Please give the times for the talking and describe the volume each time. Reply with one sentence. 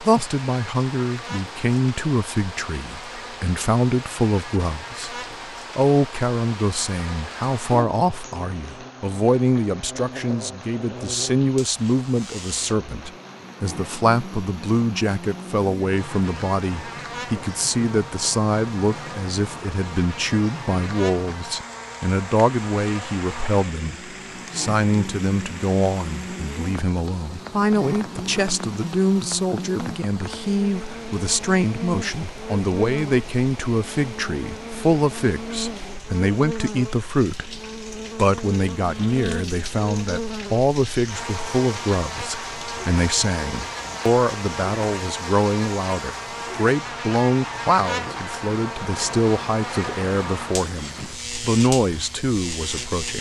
The talking can be heard from 0.0 to 37.5 s, at a steady volume; and from 38.1 to 53.1 s, at a steady volume.